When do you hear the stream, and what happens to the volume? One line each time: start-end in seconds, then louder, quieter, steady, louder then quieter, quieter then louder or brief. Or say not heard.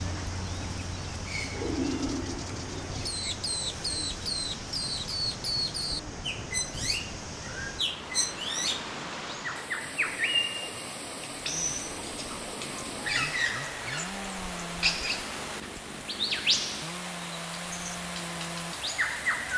0.0-19.5 steady.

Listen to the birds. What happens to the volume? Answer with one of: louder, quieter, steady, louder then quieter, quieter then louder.
steady.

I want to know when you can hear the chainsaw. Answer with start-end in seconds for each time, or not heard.
11.3-19.5.